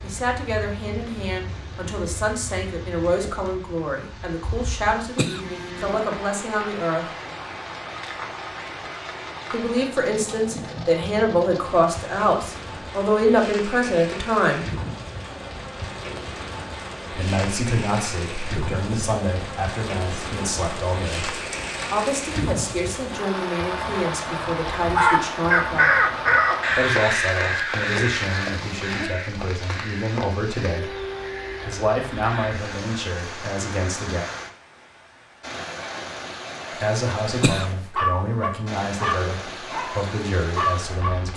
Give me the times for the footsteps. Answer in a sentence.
You can't hear the footsteps here.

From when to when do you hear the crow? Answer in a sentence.
You can hear the crow from 24.8 to 32.7 s.